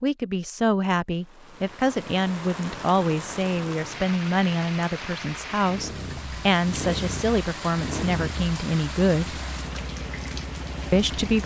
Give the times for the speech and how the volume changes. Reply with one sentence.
The speech can be heard from 0.0 to 9.4 s, at a steady volume; and briefly from 10.9 to 11.4 s.